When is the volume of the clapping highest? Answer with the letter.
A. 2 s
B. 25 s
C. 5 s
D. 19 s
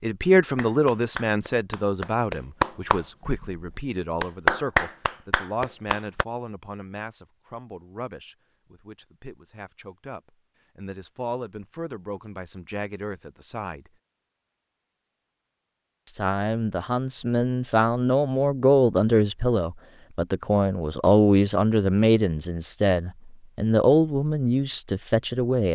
C.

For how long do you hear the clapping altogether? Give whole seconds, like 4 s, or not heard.
6 s.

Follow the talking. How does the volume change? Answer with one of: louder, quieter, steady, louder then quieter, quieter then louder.
quieter then louder.